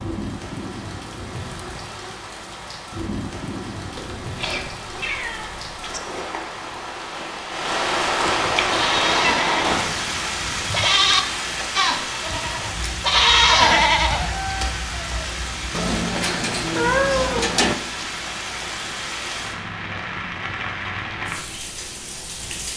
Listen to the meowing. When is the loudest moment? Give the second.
17 s.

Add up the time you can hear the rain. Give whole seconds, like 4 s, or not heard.
23 s.